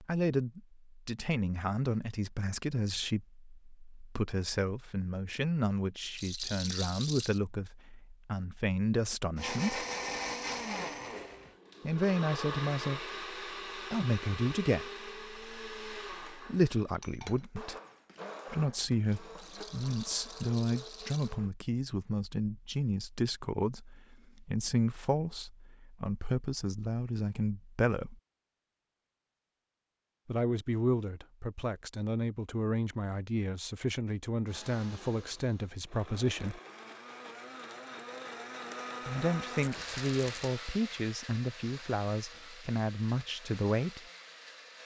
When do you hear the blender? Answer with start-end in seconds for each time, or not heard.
9.3-21.6, 34.5-44.8.